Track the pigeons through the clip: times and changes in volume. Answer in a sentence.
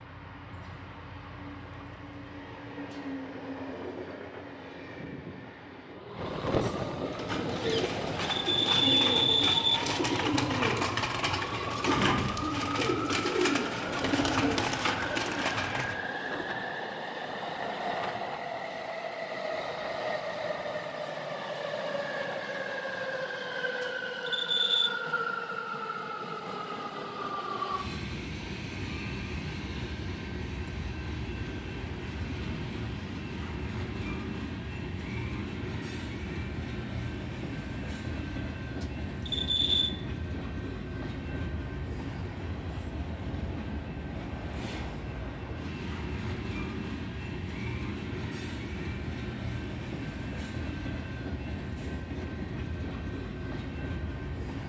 The pigeons can be heard from 7.0 to 16.6 s, at a steady volume.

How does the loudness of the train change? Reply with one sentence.
The volume of the train stays about the same.